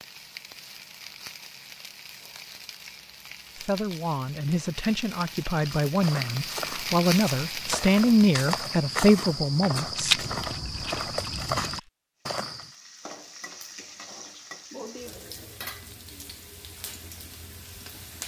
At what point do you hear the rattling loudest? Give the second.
10 s.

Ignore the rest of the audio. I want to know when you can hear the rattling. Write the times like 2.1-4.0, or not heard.
9.9-11.9.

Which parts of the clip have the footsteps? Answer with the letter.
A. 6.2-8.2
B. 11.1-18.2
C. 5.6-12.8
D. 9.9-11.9
C.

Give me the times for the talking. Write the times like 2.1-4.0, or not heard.
3.5-10.2.